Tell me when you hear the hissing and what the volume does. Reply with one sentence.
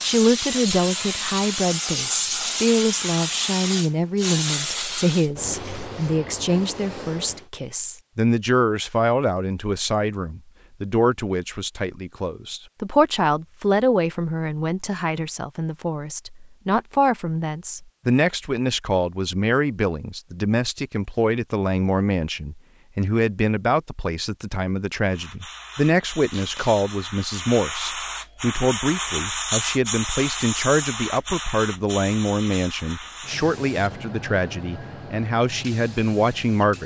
The hissing can be heard from 0.0 to 7.5 s, getting quieter; and from 25.1 to 36.8 s, getting louder then quieter.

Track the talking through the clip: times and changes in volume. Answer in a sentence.
You can hear the talking from 0.0 to 36.8 s, at a steady volume.